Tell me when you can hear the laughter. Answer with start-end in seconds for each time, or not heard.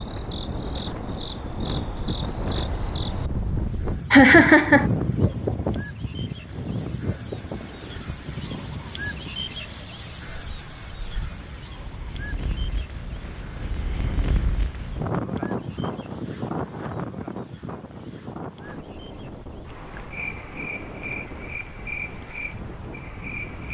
4.1-4.9.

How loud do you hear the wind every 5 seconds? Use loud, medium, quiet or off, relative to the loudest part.
loud, loud, medium, loud, medium.